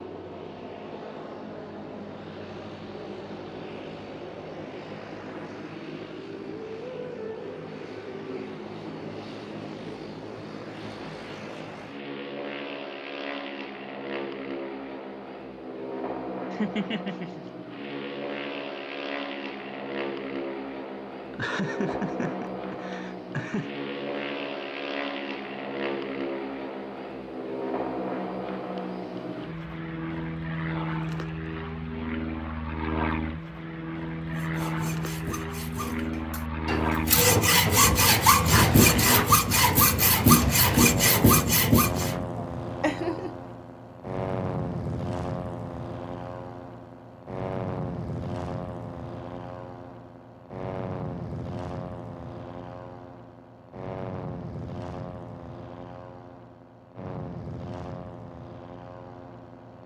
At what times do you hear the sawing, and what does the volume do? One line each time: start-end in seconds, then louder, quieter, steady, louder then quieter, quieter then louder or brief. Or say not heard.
34.2-42.2 louder.